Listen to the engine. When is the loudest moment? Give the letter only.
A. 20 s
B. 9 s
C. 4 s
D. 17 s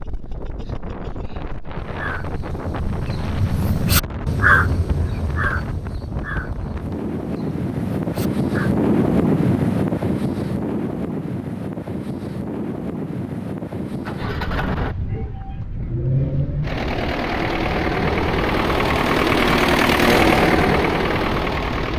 A.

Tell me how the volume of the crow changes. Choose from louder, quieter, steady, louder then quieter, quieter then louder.
louder then quieter.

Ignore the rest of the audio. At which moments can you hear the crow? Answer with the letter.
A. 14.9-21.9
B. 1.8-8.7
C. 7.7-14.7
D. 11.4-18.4
B.